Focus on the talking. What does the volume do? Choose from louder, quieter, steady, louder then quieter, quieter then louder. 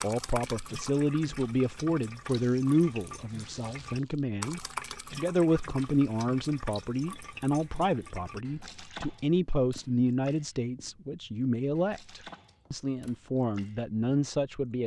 steady.